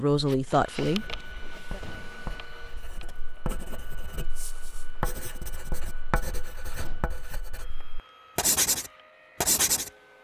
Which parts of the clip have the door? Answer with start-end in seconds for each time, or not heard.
1.8-2.9, 6.8-7.2.